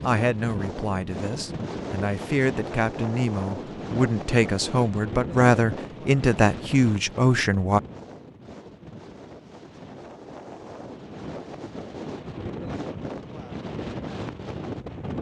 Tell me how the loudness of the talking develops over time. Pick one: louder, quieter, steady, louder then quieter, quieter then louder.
louder.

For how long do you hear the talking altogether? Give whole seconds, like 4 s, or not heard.
8 s.